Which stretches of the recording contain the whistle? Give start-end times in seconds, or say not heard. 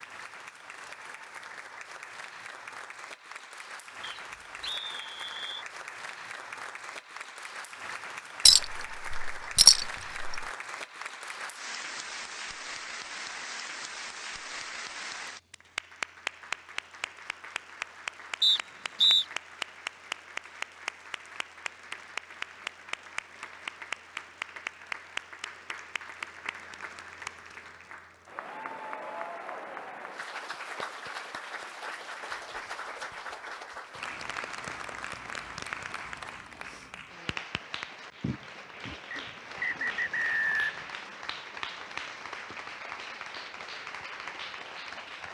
4.0-5.7, 18.4-19.2, 39.1-40.9.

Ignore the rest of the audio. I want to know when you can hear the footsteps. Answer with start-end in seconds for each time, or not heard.
not heard.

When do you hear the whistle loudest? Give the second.
19 s.